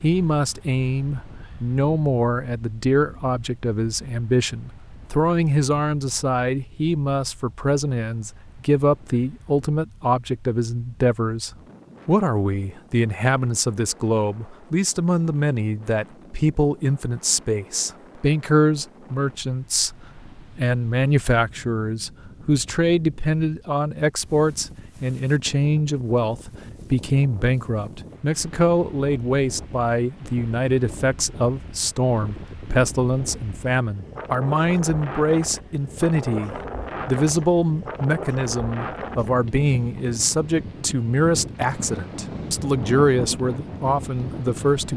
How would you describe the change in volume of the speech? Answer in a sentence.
The volume of the speech stays about the same.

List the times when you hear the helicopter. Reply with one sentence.
You can't hear the helicopter here.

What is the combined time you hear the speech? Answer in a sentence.
You can hear the speech for 45 seconds altogether.